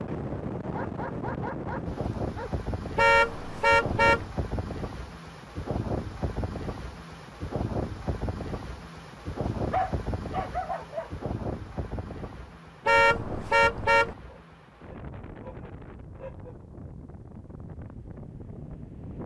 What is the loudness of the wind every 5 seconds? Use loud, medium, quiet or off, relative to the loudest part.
loud, loud, medium, medium.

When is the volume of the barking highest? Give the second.
10 s.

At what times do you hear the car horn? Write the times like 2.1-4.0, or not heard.
3.0-4.2, 12.8-14.2.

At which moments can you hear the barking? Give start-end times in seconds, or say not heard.
0.7-2.5, 9.7-11.1, 14.2-16.6.